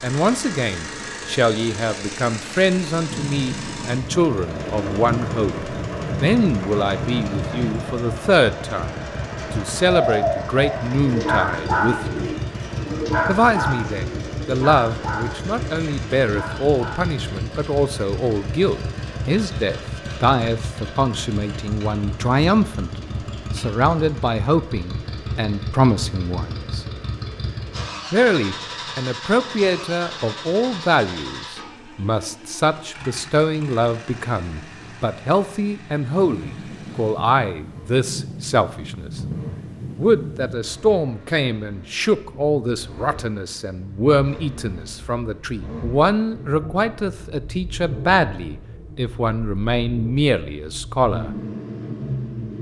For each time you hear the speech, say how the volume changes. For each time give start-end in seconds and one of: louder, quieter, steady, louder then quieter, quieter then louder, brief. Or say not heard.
0.0-12.3 steady
13.2-26.9 steady
28.1-39.2 steady
40.0-51.4 steady.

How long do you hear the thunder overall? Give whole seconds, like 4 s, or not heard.
9 s.